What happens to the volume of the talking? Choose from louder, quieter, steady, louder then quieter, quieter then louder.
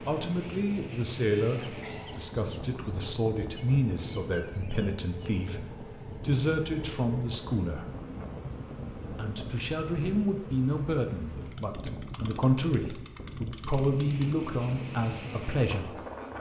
steady.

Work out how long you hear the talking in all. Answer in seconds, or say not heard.
15 s.